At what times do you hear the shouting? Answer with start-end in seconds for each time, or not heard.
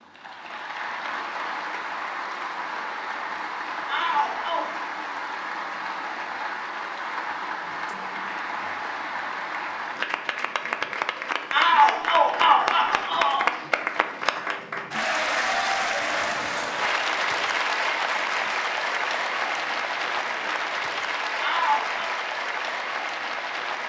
3.9-4.7, 11.5-13.5, 21.4-22.1.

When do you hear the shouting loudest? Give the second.
12 s.